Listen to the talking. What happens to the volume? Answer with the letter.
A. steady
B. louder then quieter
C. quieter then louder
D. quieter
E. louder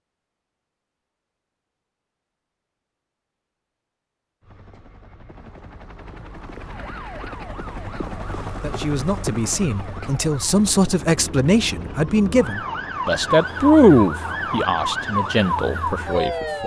B.